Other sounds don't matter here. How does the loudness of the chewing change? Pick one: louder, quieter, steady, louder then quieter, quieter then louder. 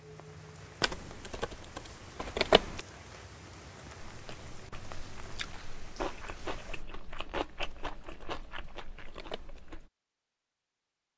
louder then quieter.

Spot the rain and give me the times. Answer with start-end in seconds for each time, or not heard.
0.0-6.8.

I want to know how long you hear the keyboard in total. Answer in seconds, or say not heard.
4 s.